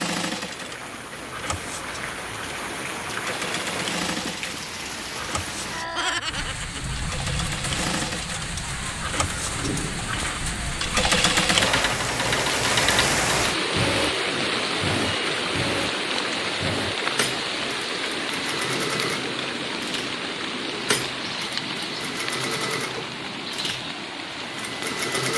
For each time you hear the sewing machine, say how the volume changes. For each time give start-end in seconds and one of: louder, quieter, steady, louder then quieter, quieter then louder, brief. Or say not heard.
0.0-25.3 louder then quieter.